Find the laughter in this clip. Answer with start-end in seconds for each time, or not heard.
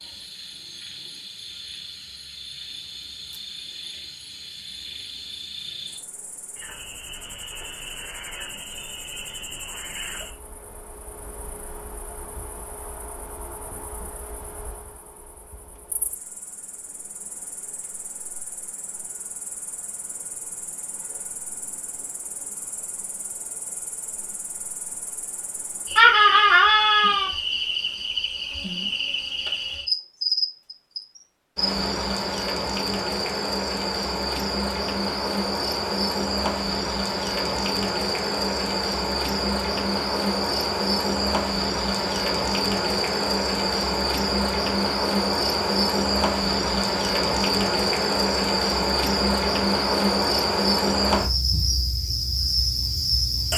25.9-27.3.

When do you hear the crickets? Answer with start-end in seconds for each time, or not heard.
0.0-53.5.